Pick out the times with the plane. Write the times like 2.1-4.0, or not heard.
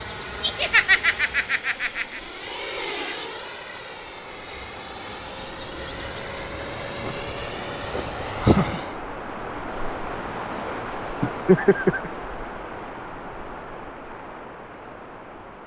0.0-9.0.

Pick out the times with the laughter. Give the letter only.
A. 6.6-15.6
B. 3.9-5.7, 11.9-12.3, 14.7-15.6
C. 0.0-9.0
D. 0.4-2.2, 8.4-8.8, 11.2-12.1
D.